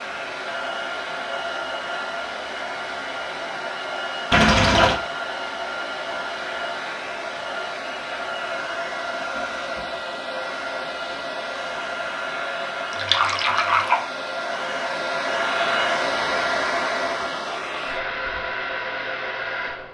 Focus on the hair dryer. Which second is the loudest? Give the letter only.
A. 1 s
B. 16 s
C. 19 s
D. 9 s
B.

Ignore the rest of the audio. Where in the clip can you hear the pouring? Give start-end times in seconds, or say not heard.
4.3-5.0, 12.9-14.0.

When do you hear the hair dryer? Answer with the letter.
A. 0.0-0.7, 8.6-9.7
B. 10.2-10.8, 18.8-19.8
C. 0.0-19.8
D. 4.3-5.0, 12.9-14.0
C.